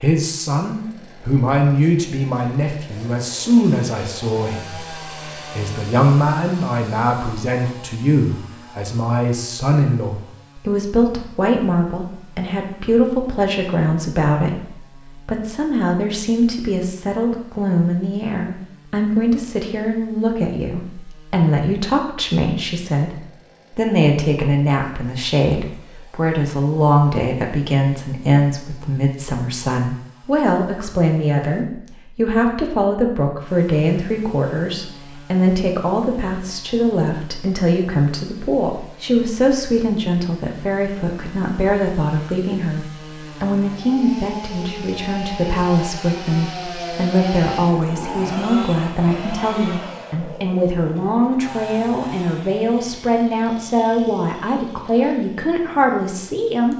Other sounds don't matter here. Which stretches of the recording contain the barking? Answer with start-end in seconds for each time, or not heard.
not heard.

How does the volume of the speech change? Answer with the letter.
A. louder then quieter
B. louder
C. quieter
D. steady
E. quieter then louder
D.